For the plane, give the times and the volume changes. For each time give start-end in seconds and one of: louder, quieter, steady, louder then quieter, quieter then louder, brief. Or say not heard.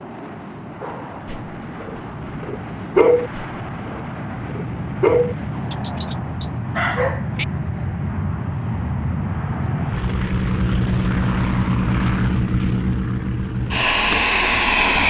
0.0-15.0 louder.